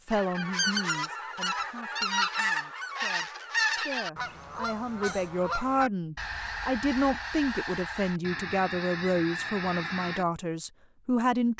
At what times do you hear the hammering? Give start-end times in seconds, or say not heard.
not heard.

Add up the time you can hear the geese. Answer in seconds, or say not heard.
10 s.